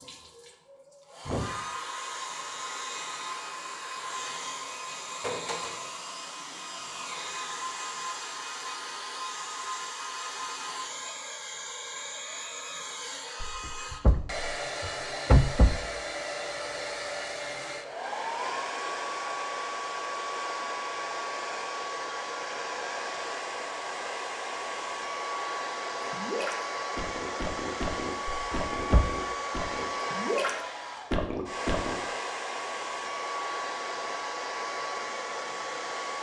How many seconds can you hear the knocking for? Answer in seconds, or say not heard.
3 s.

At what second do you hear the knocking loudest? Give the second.
15 s.